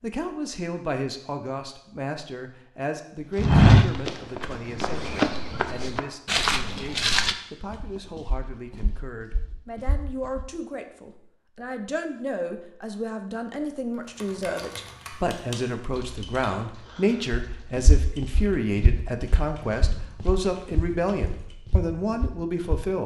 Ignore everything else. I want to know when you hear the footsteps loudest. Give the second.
4 s.